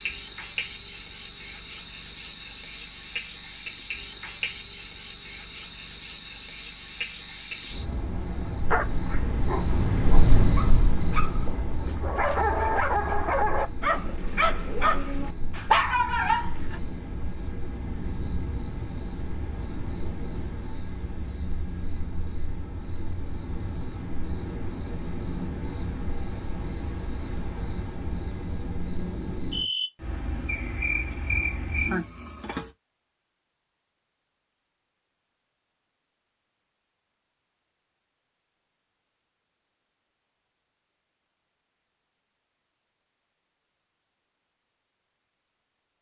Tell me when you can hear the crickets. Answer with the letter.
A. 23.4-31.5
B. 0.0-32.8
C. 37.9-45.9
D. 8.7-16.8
B.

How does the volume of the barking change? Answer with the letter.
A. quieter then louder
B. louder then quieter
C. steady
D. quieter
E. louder
E.